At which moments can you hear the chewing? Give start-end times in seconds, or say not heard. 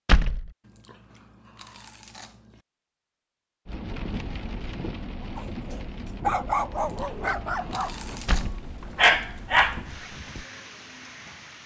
0.6-2.6, 6.8-8.7.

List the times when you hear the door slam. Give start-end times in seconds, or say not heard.
0.1-0.5, 8.2-8.7.